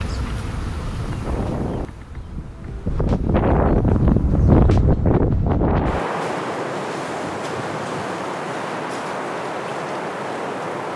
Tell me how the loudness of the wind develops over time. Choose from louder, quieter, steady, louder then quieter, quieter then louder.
louder then quieter.